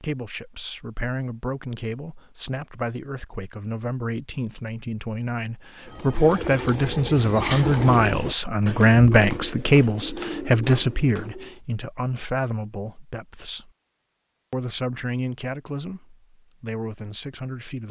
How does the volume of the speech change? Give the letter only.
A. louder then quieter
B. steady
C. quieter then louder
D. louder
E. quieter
A.